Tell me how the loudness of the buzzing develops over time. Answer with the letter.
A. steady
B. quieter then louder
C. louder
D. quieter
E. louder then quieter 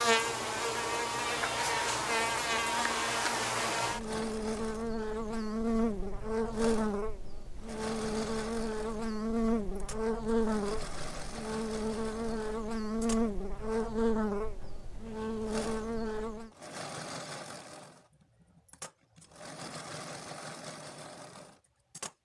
A.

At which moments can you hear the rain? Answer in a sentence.
You can't hear the rain here.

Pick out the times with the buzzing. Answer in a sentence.
The buzzing can be heard from 0.0 to 16.5 s.